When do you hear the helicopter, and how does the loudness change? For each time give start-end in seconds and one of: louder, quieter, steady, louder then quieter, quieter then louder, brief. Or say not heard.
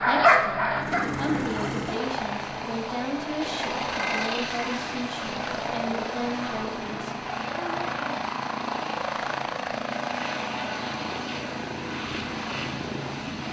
0.0-13.4 steady.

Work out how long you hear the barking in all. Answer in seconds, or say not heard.
2 s.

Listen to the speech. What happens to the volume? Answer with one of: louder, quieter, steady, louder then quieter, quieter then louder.
steady.